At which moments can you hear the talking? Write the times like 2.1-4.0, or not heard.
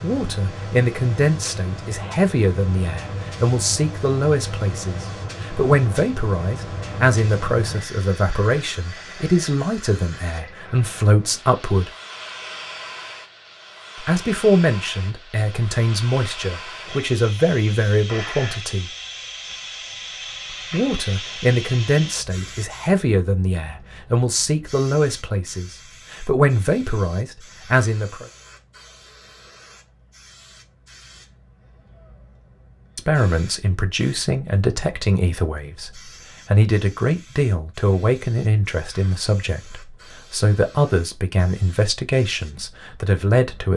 0.0-11.9, 14.0-18.9, 20.7-28.2, 33.0-43.7.